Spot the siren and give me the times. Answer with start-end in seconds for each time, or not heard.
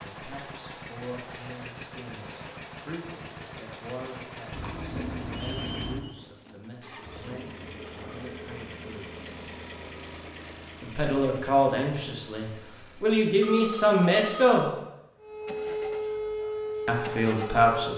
15.2-17.9.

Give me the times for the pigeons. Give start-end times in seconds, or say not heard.
not heard.